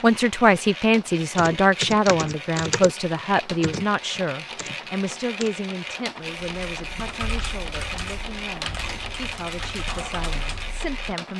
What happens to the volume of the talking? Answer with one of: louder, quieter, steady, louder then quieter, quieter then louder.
quieter.